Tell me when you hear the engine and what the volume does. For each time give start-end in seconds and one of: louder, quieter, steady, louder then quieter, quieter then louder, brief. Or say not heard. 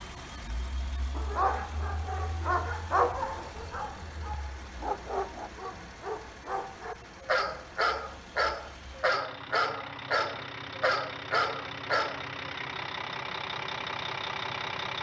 0.0-14.9 louder.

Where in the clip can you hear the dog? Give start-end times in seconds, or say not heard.
1.1-12.2.